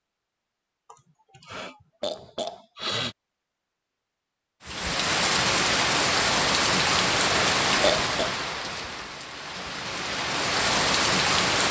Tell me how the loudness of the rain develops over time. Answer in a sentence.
The volume of the rain goes down, then up.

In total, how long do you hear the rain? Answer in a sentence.
The rain can be heard for 7 seconds in total.